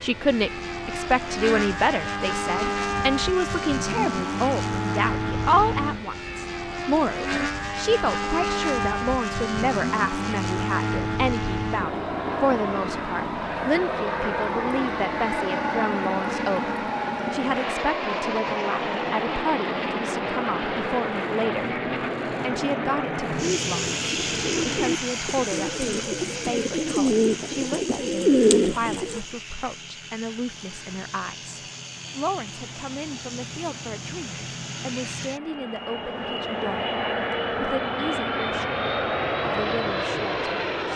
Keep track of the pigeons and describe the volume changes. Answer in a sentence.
The volume of the pigeons goes up.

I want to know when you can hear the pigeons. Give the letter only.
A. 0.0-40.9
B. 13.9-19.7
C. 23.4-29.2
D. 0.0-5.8
C.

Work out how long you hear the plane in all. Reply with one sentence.
You can hear the plane for 41 seconds altogether.